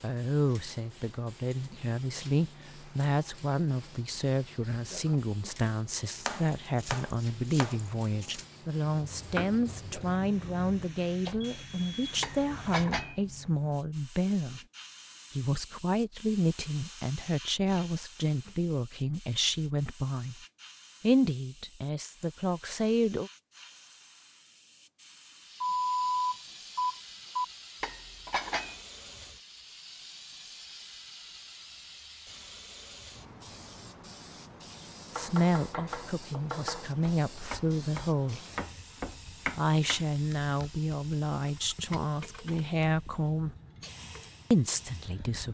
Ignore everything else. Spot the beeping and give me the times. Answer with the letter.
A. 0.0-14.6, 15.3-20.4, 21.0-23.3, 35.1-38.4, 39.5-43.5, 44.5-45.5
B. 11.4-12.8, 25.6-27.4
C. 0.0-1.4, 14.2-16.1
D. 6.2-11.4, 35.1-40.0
B.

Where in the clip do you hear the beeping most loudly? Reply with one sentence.
The volume of the beeping peaks at 26 seconds.